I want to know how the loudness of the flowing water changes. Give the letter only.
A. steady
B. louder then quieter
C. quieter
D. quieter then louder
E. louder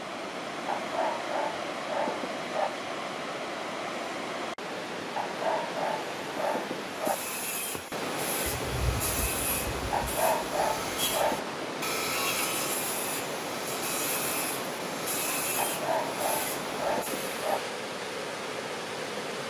A.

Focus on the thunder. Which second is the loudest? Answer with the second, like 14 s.
9 s.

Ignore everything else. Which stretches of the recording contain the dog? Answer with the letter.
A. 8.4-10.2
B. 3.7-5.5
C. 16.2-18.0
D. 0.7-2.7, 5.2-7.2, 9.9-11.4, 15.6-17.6
D.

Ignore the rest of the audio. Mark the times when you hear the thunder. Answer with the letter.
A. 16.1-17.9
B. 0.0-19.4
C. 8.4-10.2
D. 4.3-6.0
C.